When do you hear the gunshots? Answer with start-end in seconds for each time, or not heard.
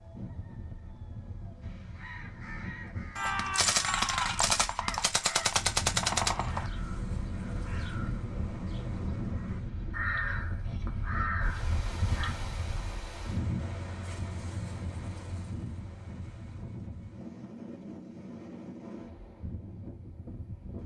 3.1-6.7.